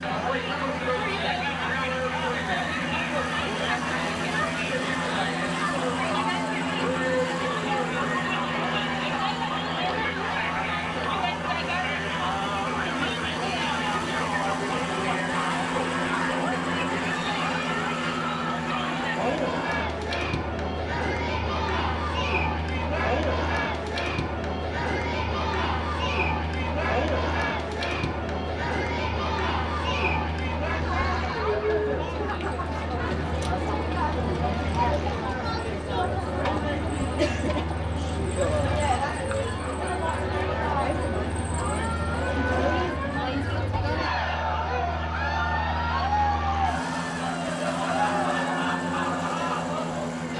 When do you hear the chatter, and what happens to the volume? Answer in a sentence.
The chatter can be heard from 0.0 to 50.3 s, at a steady volume.